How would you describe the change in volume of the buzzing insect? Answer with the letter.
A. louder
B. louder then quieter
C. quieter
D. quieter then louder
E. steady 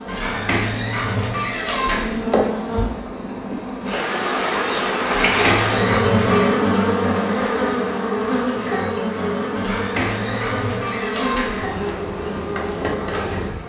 B.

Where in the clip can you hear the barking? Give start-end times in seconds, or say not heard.
0.1-2.2, 5.0-6.5, 9.6-11.7.